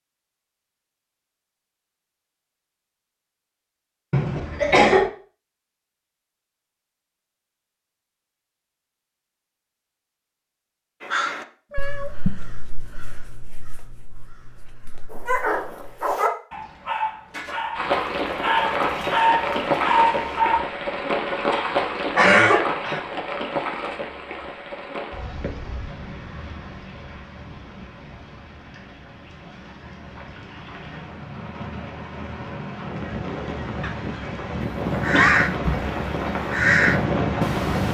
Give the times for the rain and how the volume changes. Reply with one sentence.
The rain can be heard from 17.8 to 37.8 s, getting quieter then louder.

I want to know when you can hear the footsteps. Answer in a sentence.
You can't hear the footsteps here.